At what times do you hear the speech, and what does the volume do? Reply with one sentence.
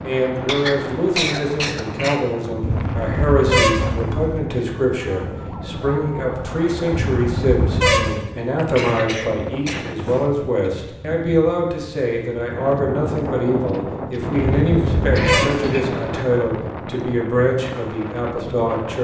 The speech can be heard from 0.0 to 18.9 s, at a steady volume.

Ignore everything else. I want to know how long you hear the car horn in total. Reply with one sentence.
You can hear the car horn for 4 seconds altogether.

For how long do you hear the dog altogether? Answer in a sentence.
The dog can't be heard in this clip.